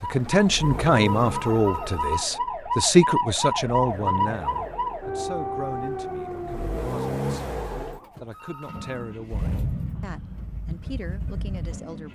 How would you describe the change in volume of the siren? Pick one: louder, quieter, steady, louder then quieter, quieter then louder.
louder then quieter.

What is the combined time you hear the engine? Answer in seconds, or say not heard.
12 s.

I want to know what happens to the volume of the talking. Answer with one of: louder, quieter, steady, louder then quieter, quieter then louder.
quieter.